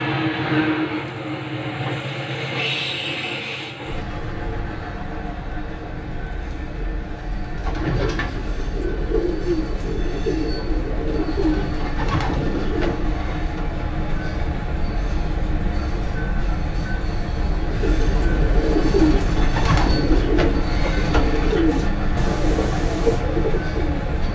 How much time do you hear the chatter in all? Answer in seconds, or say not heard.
not heard.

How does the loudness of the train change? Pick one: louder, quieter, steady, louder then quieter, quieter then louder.
quieter then louder.